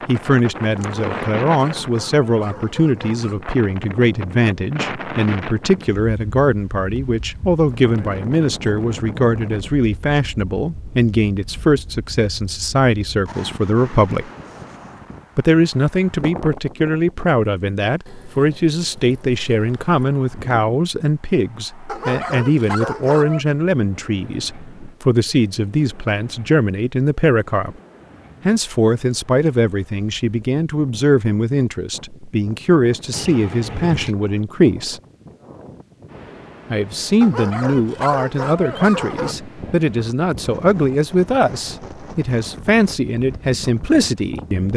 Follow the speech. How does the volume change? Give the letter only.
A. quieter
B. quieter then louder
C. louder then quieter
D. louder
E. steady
E.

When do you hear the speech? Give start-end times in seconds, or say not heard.
0.1-14.3, 15.3-27.8, 28.4-35.0, 36.7-44.7.